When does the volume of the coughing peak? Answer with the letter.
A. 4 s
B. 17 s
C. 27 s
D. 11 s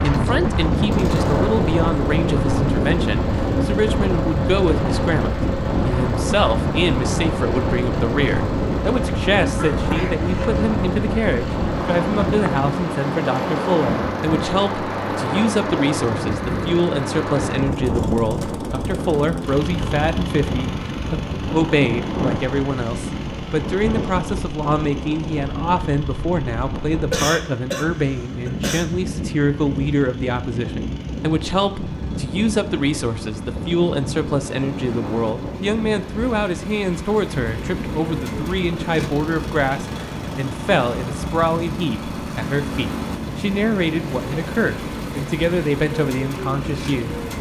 C.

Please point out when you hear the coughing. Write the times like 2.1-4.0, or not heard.
9.6-10.5, 26.9-28.9.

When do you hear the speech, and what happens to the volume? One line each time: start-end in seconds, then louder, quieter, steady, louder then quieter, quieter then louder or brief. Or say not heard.
0.0-47.2 steady.